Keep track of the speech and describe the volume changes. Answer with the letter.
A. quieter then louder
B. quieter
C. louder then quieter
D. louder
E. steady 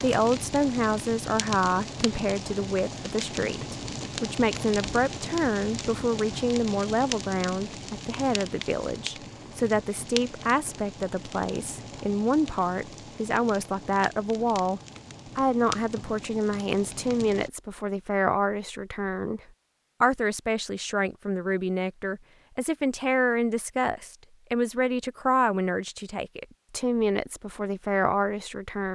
E.